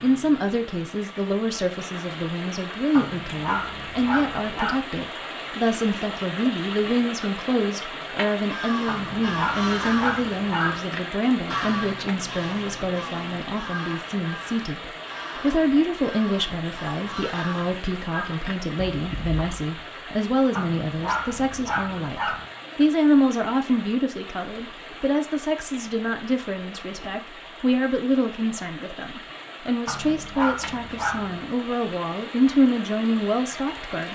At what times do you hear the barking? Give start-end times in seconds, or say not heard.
3.0-4.8, 8.8-10.8, 20.6-22.5, 29.9-31.5.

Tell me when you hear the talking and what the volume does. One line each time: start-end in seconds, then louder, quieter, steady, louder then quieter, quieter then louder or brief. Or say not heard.
0.0-34.1 steady.